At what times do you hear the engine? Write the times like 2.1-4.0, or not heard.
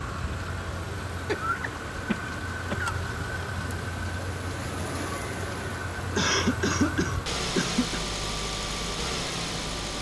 0.0-9.9.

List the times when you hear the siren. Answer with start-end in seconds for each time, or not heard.
not heard.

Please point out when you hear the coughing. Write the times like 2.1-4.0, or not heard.
1.2-3.0, 6.2-8.1.